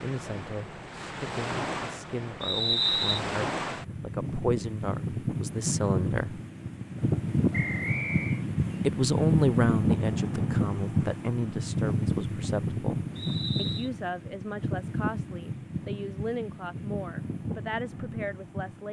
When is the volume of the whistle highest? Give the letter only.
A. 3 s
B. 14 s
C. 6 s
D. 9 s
A.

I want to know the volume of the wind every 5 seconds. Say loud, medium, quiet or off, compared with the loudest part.
medium, loud, loud, medium.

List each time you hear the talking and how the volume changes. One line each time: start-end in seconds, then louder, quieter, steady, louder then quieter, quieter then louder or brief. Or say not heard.
0.0-6.4 louder
8.8-18.8 quieter.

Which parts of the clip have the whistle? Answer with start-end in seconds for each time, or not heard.
2.4-3.2, 7.5-8.4, 13.2-13.9.